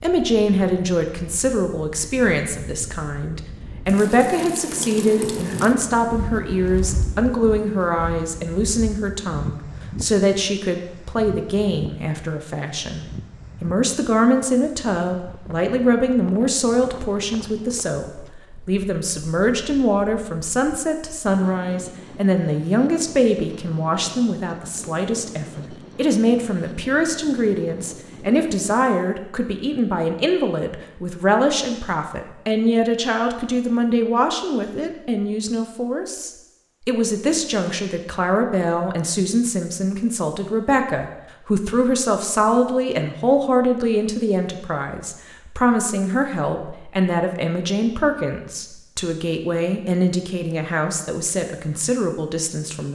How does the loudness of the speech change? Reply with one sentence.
The loudness of the speech stays about the same.